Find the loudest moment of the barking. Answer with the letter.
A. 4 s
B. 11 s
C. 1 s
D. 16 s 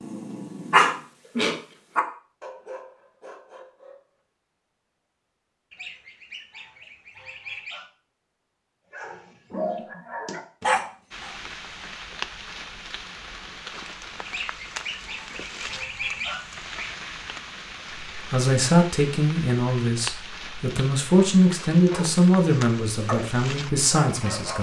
C.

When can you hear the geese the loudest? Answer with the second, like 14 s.
16 s.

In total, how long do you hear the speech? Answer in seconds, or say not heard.
6 s.